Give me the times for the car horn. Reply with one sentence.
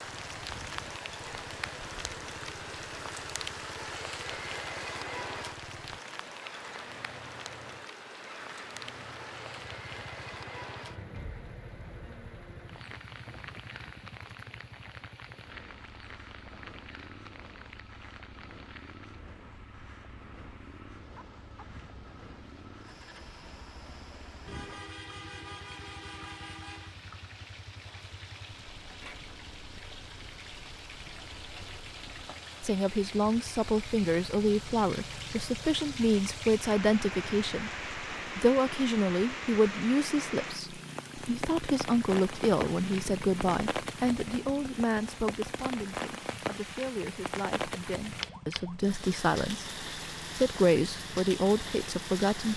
You can hear the car horn from 24.4 to 27.0 s.